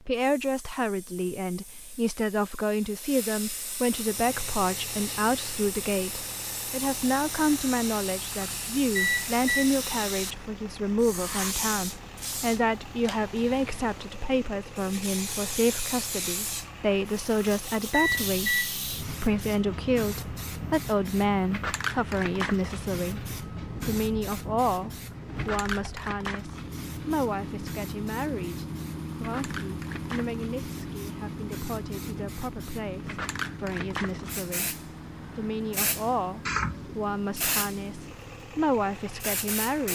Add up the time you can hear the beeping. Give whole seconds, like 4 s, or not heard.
3 s.